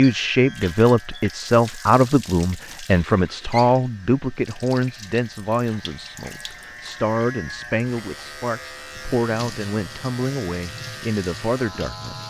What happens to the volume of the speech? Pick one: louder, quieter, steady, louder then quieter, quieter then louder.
quieter.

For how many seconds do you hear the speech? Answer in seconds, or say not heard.
12 s.